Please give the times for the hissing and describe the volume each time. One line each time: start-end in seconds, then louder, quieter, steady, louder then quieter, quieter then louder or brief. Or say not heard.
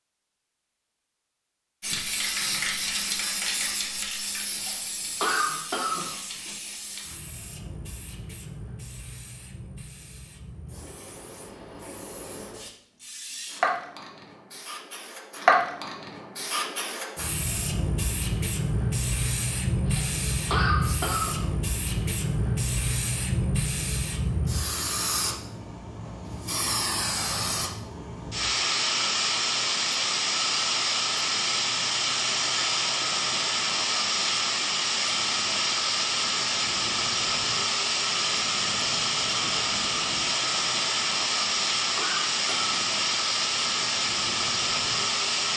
1.8-45.5 louder.